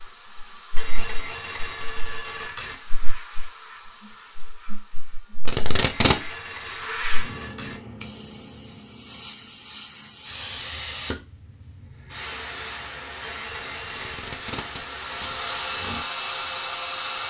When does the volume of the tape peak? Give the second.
6 s.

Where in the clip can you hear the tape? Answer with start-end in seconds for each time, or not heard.
5.5-6.2, 13.9-15.4.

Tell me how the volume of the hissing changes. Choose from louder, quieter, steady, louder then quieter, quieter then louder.
louder.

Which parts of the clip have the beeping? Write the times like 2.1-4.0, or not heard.
0.8-2.8, 5.8-7.8, 13.2-14.3.